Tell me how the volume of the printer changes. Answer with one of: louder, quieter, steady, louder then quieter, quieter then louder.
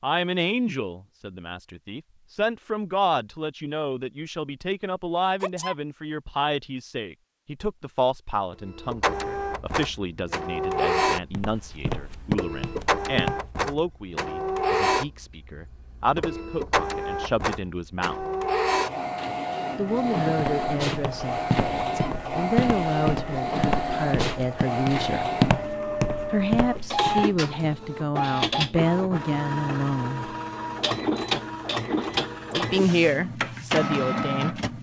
steady.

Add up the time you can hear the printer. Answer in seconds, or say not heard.
26 s.